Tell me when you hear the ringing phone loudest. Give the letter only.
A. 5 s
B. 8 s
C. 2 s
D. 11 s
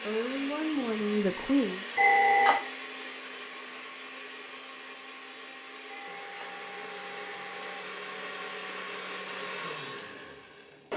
C.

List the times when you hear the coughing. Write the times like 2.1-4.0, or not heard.
not heard.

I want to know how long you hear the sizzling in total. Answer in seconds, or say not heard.
not heard.